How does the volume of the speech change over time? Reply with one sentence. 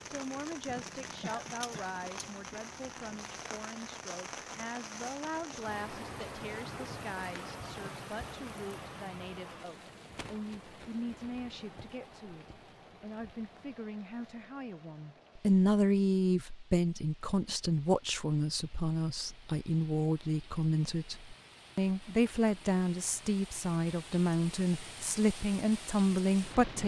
The volume of the speech goes up.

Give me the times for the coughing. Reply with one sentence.
The coughing can be heard from 1.2 to 1.9 s.